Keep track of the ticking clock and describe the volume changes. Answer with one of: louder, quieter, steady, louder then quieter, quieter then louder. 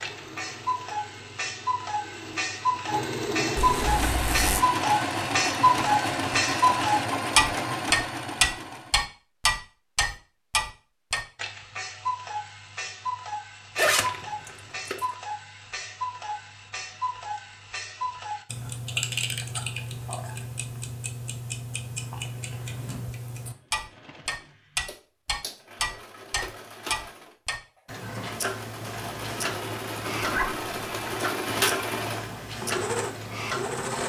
quieter.